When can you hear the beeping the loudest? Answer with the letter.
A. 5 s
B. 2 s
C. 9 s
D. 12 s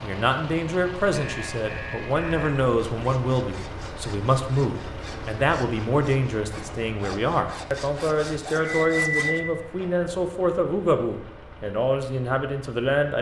C.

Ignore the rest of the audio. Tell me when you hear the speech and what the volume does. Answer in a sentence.
You can hear the speech from 0.0 to 13.1 s, at a steady volume.